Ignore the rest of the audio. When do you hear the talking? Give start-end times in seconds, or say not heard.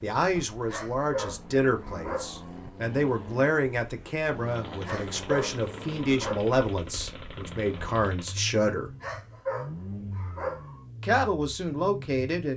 0.0-8.9, 11.0-12.5.